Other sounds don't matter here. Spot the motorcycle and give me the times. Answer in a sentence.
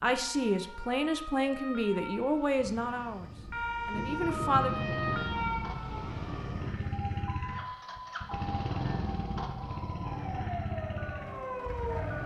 You can hear the motorcycle from 4.6 to 12.2 s.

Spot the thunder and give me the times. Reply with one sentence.
The thunder can be heard from 2.5 to 7.2 s.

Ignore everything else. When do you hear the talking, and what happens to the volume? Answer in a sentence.
You can hear the talking from 0.0 to 5.0 s, getting quieter then louder.